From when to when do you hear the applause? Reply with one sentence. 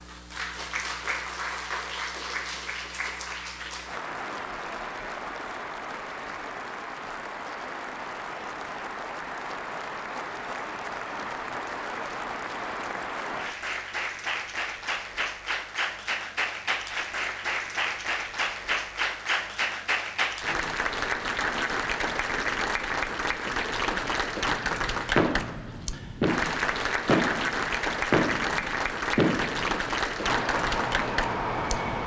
The applause can be heard from 0.0 to 32.0 s.